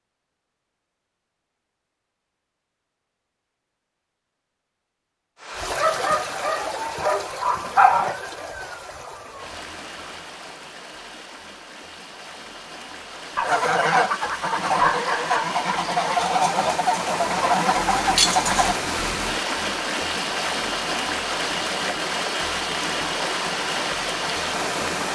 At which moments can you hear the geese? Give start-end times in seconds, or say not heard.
13.4-18.8.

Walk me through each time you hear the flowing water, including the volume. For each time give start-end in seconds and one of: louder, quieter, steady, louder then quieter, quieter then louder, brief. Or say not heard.
5.4-25.1 quieter then louder.